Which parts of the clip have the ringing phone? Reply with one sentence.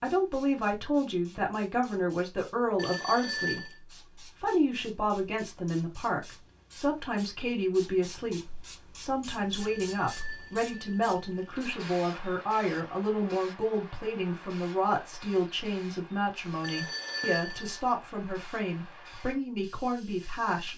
You can hear the ringing phone from 2.8 to 3.8 s, from 9.6 to 11.6 s and from 16.6 to 17.8 s.